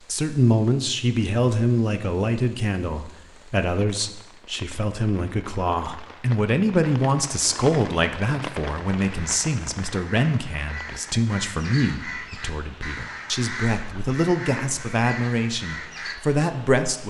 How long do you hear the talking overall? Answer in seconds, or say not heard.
17 s.